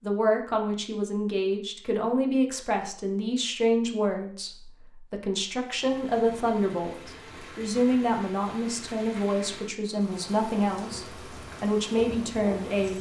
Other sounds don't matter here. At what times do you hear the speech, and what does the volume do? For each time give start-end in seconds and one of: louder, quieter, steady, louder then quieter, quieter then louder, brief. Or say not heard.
0.0-12.9 steady.